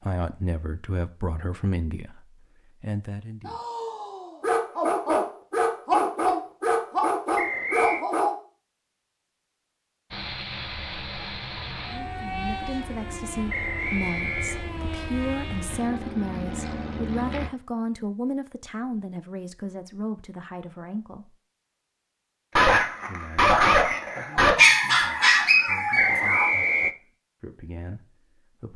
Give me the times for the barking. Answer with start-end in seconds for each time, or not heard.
3.5-8.3, 22.6-26.5.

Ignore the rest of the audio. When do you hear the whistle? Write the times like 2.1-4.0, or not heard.
7.3-8.1, 13.4-14.7, 25.9-26.9.